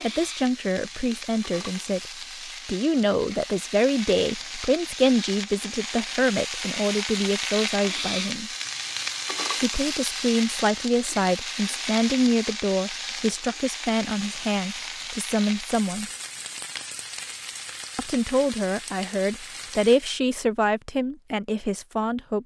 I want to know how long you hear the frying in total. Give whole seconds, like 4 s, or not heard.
20 s.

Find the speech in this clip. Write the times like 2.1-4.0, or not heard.
0.0-2.0, 2.6-8.5, 9.6-16.1, 17.9-22.4.